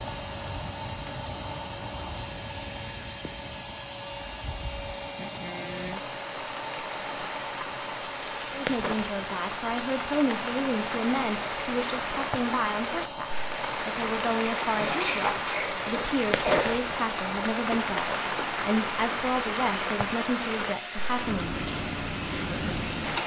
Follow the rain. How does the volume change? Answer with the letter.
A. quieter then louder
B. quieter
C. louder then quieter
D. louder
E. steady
D.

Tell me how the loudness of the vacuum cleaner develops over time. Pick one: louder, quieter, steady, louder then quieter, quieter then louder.
steady.